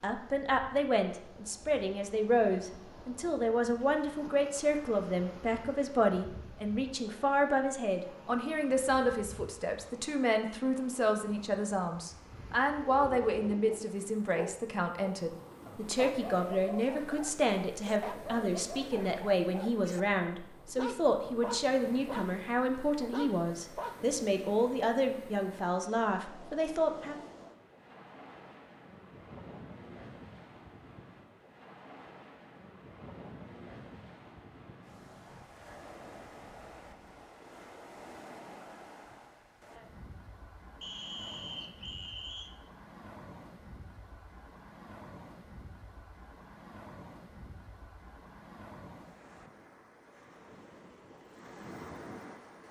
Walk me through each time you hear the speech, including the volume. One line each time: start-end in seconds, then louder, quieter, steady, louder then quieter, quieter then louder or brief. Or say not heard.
0.0-27.2 steady.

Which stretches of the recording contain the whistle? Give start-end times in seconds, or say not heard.
40.8-42.5.